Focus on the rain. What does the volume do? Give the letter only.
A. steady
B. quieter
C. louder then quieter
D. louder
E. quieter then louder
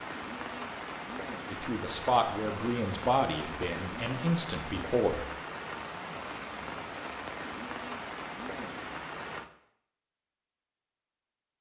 A.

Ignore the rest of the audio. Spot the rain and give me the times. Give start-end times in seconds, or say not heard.
0.0-9.5.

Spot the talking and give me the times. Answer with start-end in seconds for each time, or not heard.
1.5-5.2.